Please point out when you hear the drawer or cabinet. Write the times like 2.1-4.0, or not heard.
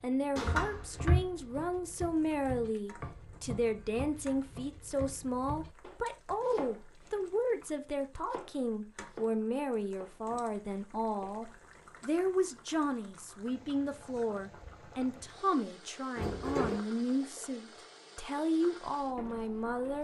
0.3-1.3, 16.1-16.8.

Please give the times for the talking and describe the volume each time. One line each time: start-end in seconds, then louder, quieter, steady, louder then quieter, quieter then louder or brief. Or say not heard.
0.0-19.9 steady.